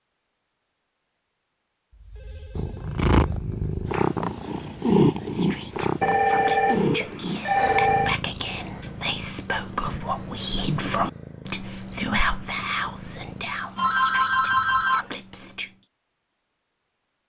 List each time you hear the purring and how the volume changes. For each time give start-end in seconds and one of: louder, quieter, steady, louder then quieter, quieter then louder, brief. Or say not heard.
2.5-14.8 quieter.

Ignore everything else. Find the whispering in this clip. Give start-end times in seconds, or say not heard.
5.2-15.7.